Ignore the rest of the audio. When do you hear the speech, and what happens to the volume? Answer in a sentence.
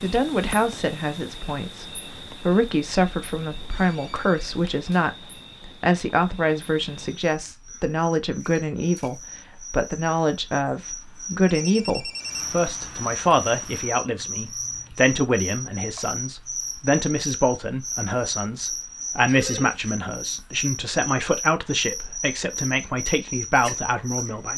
The speech can be heard from 0.0 to 24.5 s, at a steady volume.